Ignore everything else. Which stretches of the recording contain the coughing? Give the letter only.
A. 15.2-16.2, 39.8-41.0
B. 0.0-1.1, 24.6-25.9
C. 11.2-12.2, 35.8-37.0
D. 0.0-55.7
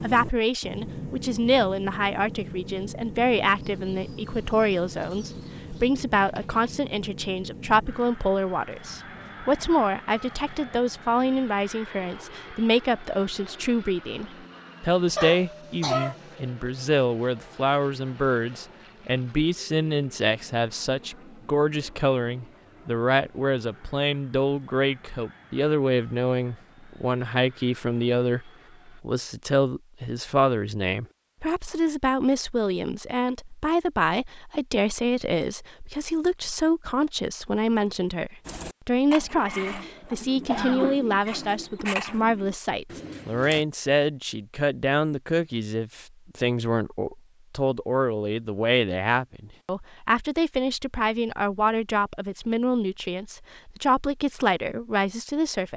A.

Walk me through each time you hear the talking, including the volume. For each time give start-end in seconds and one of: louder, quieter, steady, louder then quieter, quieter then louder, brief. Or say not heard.
0.0-55.7 steady.